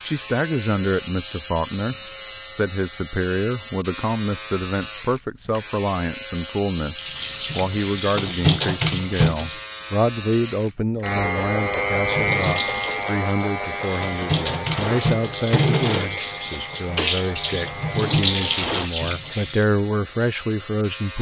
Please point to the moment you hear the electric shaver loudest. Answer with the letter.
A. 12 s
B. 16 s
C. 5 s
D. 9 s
A.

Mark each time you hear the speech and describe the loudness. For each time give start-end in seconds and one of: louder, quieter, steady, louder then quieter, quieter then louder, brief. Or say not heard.
0.0-21.1 steady.